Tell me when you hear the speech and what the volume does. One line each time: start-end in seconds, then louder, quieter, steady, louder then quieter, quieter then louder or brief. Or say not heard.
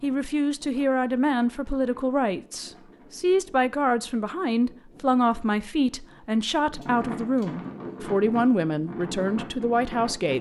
0.0-10.3 steady.